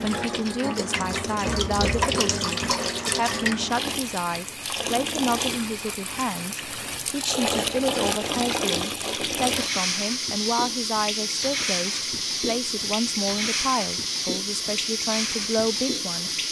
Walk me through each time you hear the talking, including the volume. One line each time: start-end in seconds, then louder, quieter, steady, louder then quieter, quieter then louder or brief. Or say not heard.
0.0-16.4 steady.